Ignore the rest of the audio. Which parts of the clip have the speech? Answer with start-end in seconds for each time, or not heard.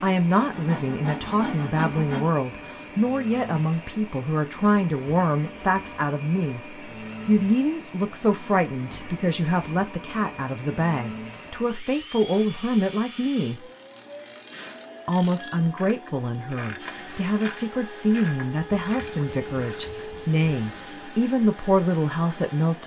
0.0-6.6, 7.2-13.6, 15.1-22.8.